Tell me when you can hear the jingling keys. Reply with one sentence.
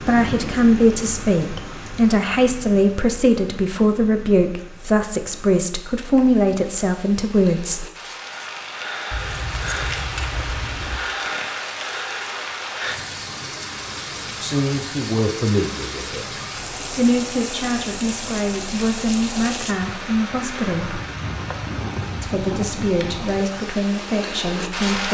The jingling keys can be heard from 9.1 to 11.0 s.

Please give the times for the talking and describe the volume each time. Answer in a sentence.
The talking can be heard from 0.1 to 7.8 s, at a steady volume; briefly from 14.4 to 16.4 s; from 16.9 to 21.0 s, at a steady volume; and briefly from 22.2 to 25.0 s.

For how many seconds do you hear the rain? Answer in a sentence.
The rain can be heard for 25 seconds in total.